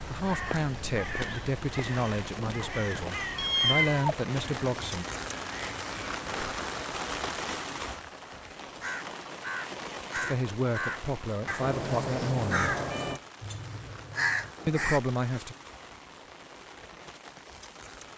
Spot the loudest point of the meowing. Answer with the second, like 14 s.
4 s.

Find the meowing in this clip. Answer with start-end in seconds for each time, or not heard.
2.5-4.2, 11.6-13.2.